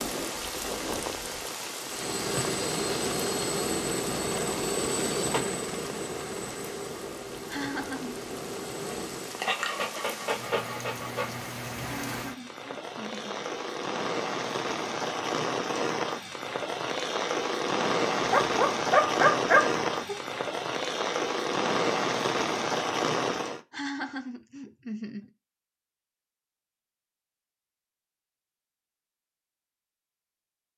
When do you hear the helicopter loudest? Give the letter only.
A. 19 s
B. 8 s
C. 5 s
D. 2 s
C.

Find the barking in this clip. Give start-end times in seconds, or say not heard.
9.4-11.3, 18.2-20.1.